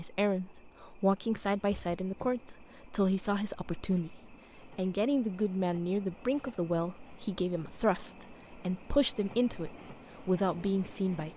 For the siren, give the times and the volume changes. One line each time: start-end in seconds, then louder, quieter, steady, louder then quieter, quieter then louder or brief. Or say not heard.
not heard.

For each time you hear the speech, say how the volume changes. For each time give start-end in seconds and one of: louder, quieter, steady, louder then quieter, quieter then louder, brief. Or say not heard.
0.0-11.3 steady.